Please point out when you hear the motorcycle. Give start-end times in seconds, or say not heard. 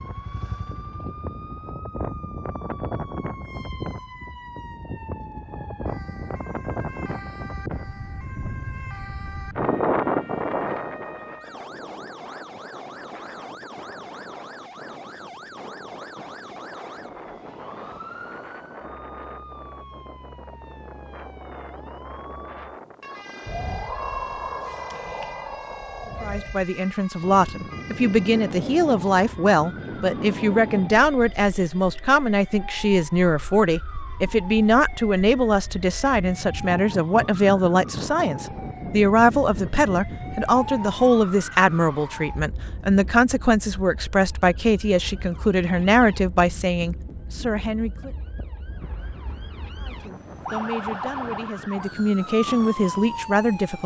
0.0-1.7.